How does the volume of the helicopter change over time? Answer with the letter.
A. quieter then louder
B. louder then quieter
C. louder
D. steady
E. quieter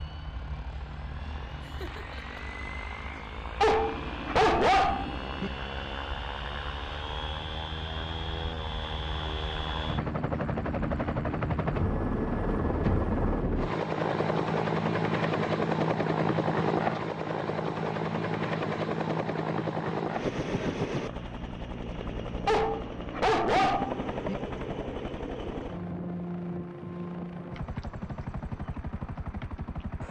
B.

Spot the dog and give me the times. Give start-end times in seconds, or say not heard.
3.6-5.5, 22.4-24.4.